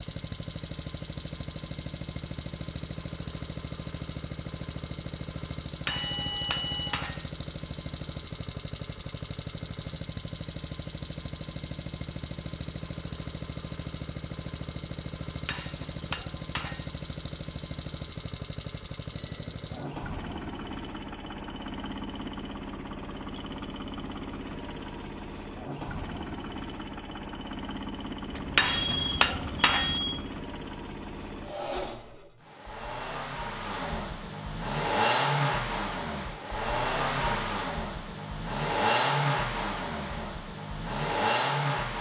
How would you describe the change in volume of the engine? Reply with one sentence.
The volume of the engine goes up.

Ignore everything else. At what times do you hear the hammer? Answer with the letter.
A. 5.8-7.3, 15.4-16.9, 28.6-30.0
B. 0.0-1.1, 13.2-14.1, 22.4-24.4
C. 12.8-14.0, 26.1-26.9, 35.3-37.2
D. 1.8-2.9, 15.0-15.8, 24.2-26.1
A.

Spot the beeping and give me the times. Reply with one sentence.
The beeping can be heard from 5.8 to 7.0 s, from 19.1 to 19.9 s and from 28.3 to 30.2 s.